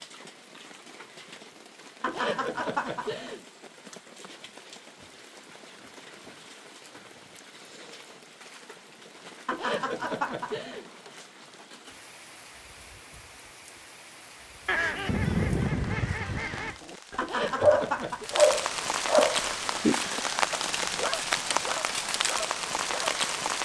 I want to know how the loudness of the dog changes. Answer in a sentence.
The loudness of the dog goes down.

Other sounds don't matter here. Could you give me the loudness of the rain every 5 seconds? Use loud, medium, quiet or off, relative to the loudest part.
quiet, quiet, quiet, medium, loud.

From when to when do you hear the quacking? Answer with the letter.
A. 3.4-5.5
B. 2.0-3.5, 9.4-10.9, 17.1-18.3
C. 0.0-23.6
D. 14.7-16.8
D.